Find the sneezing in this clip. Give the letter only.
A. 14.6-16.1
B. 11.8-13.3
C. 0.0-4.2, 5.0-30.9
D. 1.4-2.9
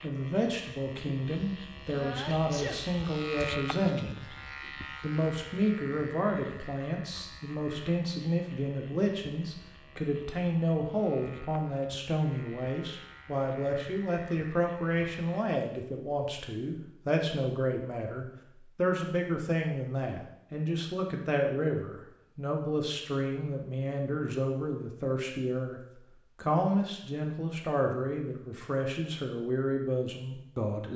D.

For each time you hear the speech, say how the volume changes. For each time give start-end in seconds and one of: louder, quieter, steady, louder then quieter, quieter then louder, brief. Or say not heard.
0.0-4.2 steady
5.0-30.9 steady.